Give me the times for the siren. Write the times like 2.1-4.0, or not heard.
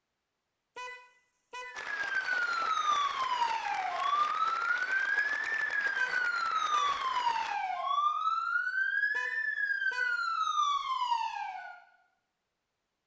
1.9-11.8.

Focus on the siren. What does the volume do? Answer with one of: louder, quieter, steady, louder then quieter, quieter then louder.
steady.